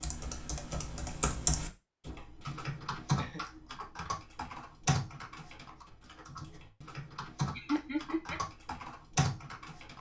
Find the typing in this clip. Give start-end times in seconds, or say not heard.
0.0-9.9.